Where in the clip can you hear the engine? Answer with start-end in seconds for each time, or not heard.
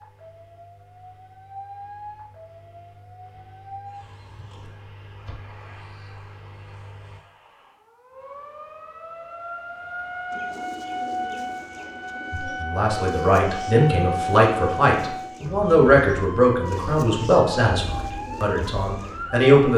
0.0-7.2.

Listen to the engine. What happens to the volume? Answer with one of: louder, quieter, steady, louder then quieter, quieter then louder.
louder.